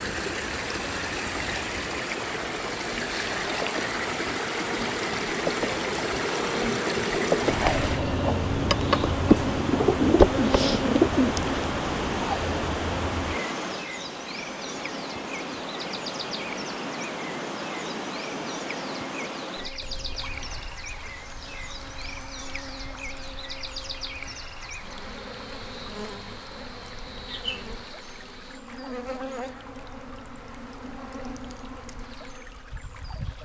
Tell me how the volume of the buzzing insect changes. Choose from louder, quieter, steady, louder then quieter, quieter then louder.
louder then quieter.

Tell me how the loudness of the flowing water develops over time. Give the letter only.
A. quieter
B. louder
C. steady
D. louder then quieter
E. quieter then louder
A.